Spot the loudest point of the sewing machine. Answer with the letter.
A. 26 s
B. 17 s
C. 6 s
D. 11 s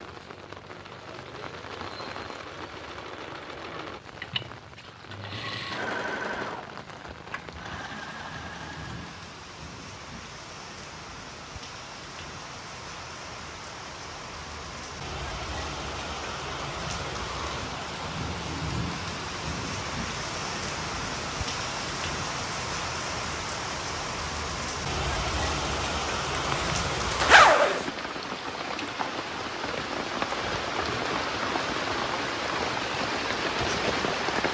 C.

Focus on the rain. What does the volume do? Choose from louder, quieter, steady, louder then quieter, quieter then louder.
louder.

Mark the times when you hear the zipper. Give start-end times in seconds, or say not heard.
26.3-27.9.